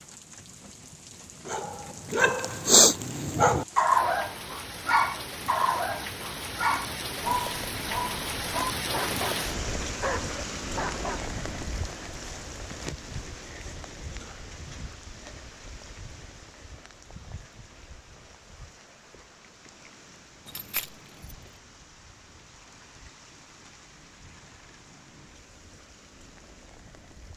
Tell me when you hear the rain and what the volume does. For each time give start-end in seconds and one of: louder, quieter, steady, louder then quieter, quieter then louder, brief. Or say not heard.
0.0-27.3 louder then quieter.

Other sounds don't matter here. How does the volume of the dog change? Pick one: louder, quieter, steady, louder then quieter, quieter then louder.
quieter.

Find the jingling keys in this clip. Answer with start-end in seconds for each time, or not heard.
20.4-21.4.